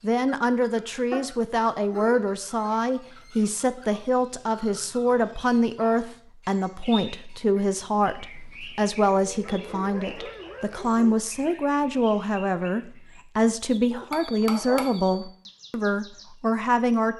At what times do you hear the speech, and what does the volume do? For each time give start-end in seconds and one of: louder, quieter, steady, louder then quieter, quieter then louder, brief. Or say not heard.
0.0-17.1 steady.